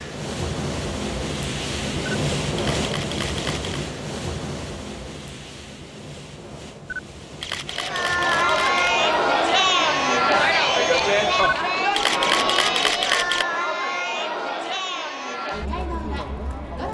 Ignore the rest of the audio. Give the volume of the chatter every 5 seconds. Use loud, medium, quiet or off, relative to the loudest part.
off, loud, loud, medium.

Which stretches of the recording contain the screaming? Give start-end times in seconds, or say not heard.
not heard.